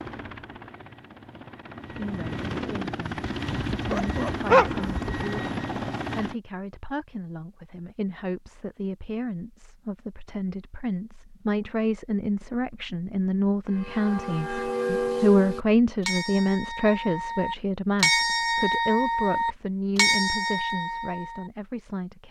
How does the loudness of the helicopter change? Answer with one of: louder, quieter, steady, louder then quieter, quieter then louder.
louder.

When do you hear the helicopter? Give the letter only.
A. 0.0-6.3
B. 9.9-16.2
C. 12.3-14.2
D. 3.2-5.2
A.